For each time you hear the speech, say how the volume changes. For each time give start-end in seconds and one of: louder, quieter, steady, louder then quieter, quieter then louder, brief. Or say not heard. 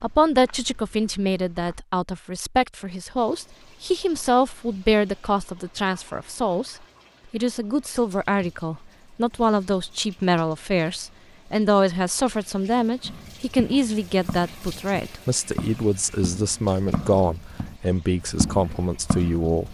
0.0-19.7 steady.